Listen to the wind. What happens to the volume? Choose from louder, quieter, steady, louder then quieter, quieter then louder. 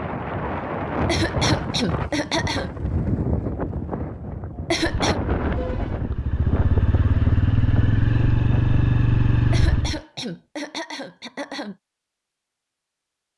quieter.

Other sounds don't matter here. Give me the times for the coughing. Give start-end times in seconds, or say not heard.
0.9-2.7, 4.5-5.2, 9.3-11.8.